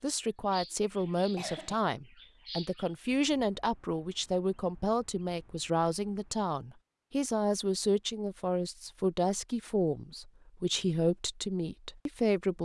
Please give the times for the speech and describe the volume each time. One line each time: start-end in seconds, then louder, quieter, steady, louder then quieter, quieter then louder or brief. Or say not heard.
0.0-12.5 steady.